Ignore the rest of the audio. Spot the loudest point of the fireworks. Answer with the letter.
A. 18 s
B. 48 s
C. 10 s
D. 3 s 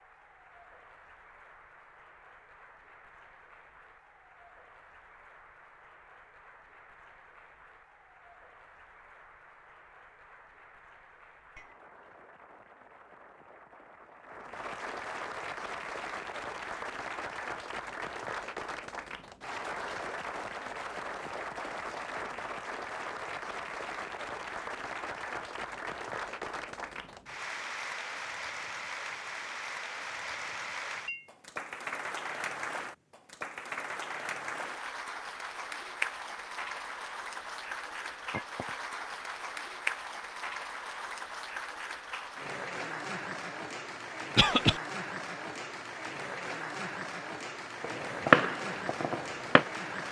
B.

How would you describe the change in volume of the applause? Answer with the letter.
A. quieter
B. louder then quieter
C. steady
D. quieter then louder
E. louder
E.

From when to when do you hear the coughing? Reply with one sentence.
The coughing can be heard from 44.4 to 44.8 s.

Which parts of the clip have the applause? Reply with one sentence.
The applause can be heard from 0.0 to 50.0 s.